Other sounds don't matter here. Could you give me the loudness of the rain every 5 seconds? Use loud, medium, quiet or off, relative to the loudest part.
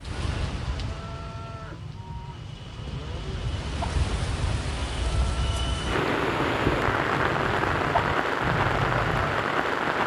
medium, loud.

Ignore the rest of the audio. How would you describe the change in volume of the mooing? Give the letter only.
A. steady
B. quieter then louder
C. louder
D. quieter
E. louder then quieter
C.